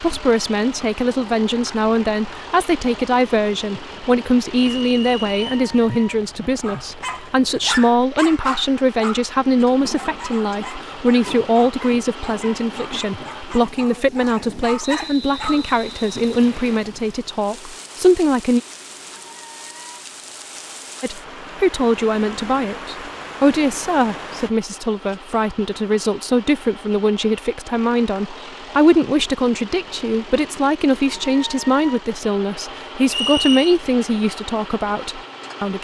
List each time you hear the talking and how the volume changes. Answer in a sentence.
You can hear the talking from 0.0 to 18.6 s, at a steady volume; and from 21.0 to 35.7 s, at a steady volume.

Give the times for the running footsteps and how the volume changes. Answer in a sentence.
You can't hear the running footsteps here.